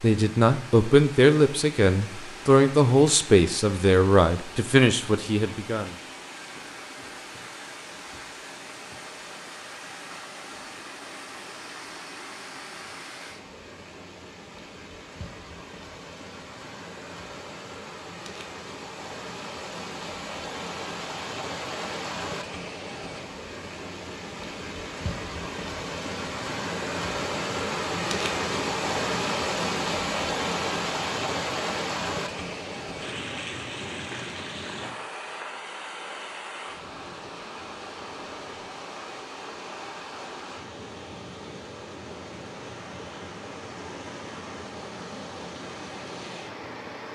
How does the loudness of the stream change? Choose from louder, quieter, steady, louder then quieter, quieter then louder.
louder then quieter.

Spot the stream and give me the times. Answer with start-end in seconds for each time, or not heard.
0.0-47.1.